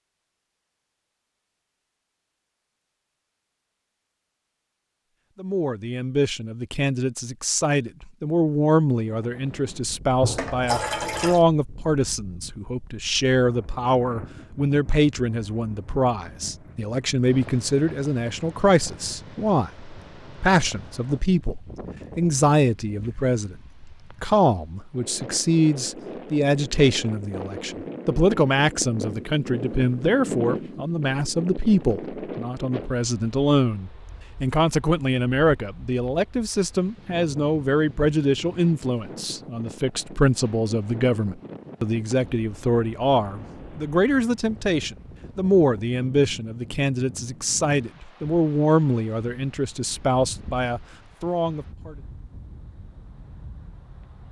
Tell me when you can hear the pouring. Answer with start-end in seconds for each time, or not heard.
10.2-11.4.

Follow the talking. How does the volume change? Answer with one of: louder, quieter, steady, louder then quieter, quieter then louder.
steady.